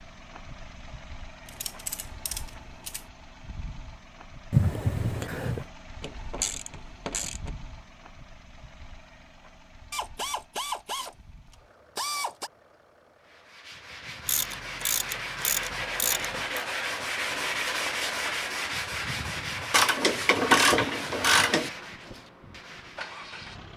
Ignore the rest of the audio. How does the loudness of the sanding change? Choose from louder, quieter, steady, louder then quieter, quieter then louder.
louder then quieter.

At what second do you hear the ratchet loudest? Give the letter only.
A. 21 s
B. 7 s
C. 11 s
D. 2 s
A.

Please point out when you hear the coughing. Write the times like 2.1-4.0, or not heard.
4.5-5.7.